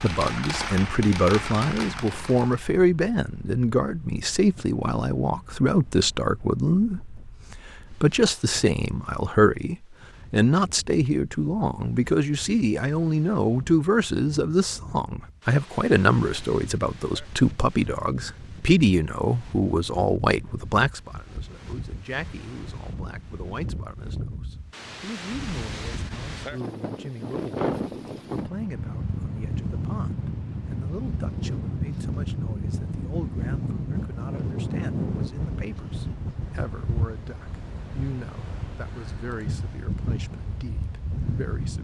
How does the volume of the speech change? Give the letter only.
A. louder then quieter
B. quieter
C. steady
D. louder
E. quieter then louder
B.